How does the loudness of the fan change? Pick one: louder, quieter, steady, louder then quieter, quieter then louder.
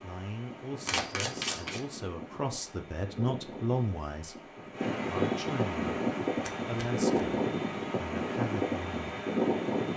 louder.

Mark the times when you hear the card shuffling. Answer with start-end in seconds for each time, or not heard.
0.8-1.8, 6.4-7.2.